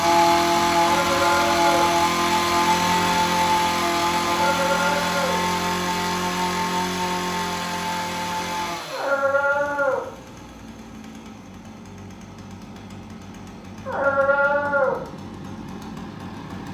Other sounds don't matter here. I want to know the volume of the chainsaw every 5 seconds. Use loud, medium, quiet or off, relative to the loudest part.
loud, medium, quiet, quiet.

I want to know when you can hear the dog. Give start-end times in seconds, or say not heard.
0.8-1.9, 4.2-5.4, 8.9-10.1, 13.8-15.0.